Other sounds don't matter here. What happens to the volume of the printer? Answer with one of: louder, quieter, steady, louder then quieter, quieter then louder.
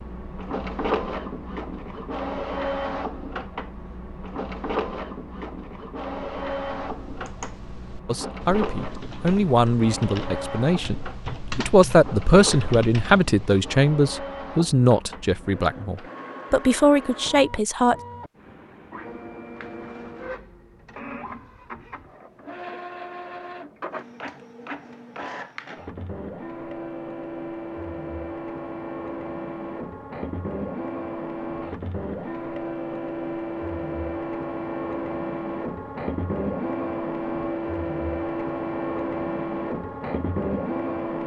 quieter then louder.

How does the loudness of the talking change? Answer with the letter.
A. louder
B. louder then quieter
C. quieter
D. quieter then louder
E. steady
E.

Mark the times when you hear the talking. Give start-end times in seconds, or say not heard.
8.1-17.9.